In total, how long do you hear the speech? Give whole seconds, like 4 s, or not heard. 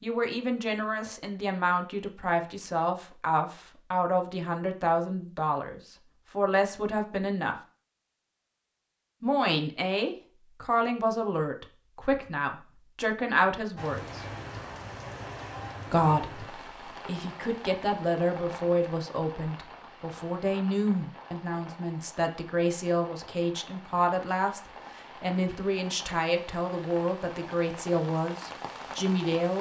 26 s.